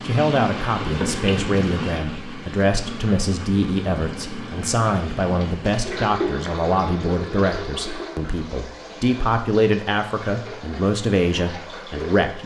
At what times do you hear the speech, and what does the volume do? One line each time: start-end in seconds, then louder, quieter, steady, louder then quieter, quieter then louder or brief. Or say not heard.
0.0-12.4 steady.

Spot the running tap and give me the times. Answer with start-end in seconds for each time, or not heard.
0.0-12.4.